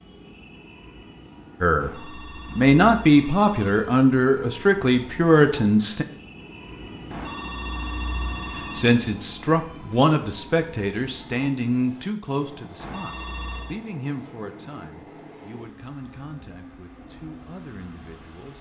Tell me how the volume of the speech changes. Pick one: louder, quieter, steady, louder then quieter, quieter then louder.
quieter.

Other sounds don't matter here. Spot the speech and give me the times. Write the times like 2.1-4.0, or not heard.
1.6-6.0, 8.6-18.5.